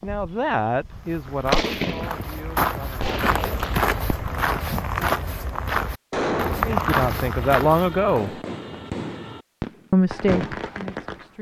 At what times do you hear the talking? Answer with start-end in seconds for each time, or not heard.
0.0-3.1, 6.7-8.4, 9.9-11.3.